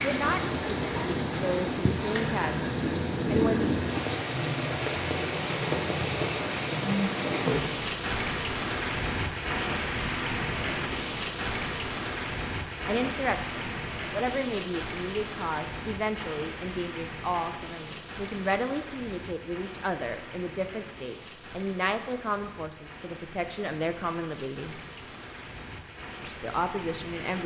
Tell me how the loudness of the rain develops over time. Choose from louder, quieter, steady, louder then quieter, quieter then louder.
quieter.